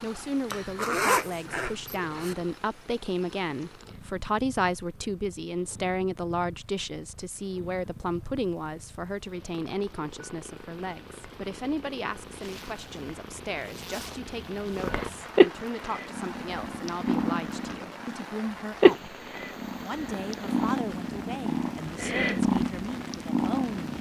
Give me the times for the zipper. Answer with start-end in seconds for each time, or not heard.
0.5-2.4, 12.2-14.9.